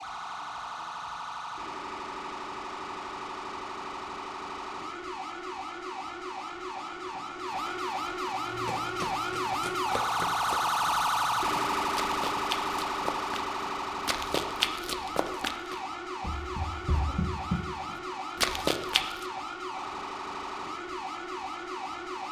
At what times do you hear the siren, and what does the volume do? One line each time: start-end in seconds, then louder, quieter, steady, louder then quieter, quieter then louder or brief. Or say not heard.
0.0-22.2 louder then quieter.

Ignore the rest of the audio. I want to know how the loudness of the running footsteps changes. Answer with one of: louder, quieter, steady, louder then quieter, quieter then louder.
louder.